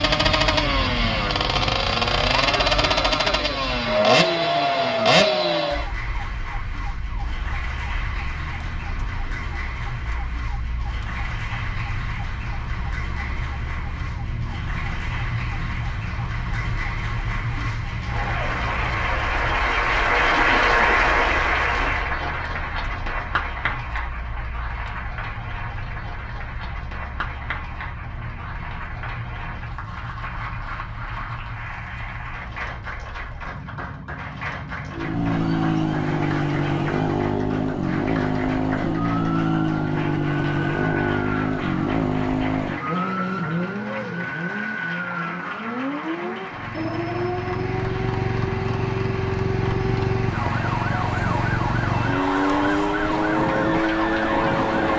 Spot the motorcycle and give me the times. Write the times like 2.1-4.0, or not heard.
0.0-5.8, 34.9-54.9.